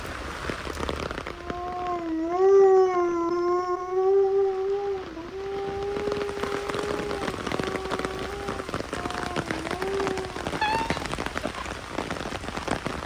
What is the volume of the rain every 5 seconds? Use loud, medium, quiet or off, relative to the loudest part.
medium, loud, loud.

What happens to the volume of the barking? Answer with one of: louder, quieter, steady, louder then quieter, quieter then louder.
quieter.